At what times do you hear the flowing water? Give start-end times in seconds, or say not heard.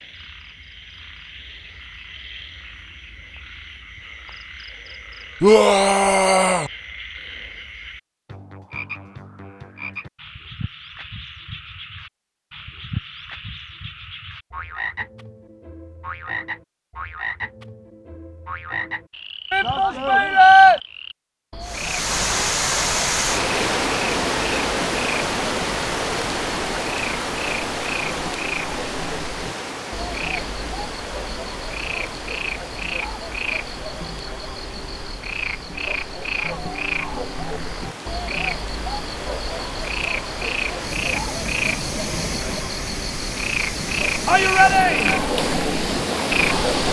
21.6-46.8.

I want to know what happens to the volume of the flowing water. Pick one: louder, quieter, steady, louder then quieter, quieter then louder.
quieter then louder.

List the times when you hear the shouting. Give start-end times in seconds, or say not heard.
5.4-6.7, 19.5-20.8, 44.2-45.2.